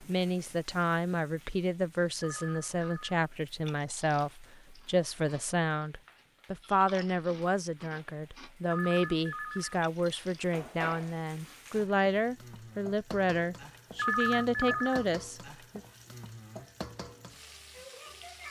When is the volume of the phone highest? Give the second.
14 s.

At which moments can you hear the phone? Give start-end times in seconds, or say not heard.
2.2-3.2, 8.7-9.8, 13.9-15.1.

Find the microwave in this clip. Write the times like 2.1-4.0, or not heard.
not heard.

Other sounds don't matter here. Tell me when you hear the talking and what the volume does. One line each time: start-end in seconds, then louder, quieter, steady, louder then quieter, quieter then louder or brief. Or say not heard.
0.0-15.8 steady.